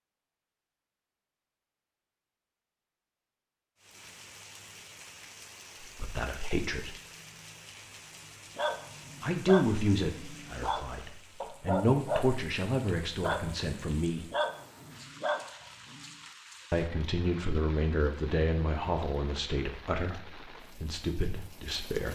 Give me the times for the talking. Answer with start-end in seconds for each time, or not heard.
5.8-7.0, 9.2-14.2, 16.7-22.0.